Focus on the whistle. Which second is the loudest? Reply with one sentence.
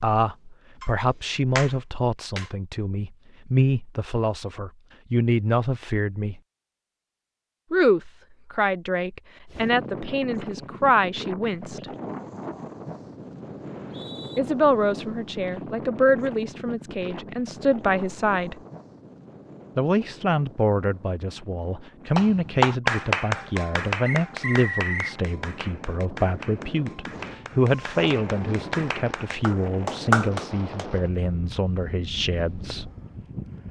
The loudest moment of the whistle is at 25 seconds.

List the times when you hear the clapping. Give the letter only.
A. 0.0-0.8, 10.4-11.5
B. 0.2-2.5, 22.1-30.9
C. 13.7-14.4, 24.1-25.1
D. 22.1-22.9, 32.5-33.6
B.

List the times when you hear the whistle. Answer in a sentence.
You can hear the whistle from 13.7 to 14.4 s and from 24.1 to 25.1 s.